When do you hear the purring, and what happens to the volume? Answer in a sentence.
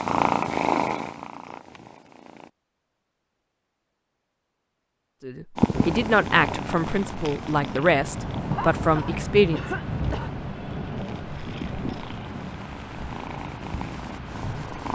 You can hear the purring briefly from 0.0 to 2.5 s; and from 5.5 to 14.9 s, getting quieter then louder.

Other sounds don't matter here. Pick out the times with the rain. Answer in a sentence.
The rain can be heard from 5.7 to 14.9 s.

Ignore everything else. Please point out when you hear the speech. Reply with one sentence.
You can hear the speech from 5.2 to 9.6 s.